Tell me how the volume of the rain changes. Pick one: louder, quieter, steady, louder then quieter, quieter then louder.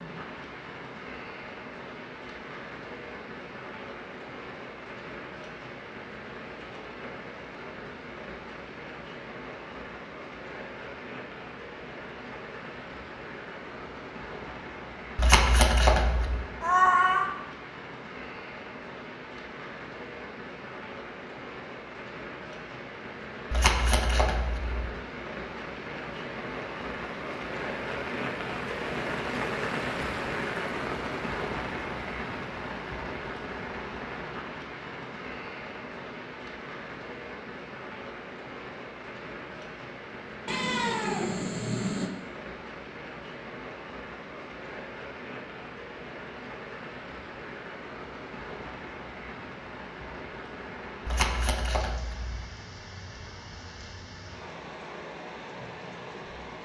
louder then quieter.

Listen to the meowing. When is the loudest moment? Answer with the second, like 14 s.
17 s.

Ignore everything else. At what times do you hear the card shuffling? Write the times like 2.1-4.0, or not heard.
15.2-16.4, 23.5-24.9, 51.0-52.5.